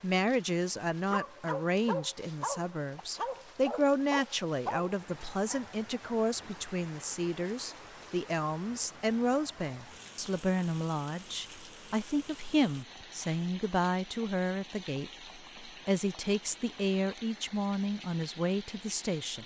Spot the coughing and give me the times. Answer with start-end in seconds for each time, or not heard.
not heard.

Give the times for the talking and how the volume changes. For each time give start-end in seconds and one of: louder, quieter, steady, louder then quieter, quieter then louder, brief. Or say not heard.
0.0-19.4 steady.